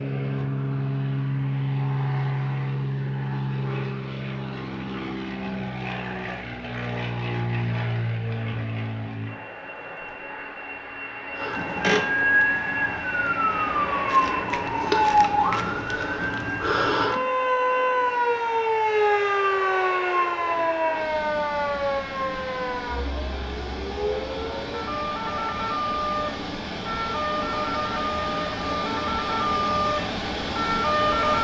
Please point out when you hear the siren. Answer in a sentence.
You can hear the siren from 11.3 to 31.3 s.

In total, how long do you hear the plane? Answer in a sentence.
You can hear the plane for 31 seconds altogether.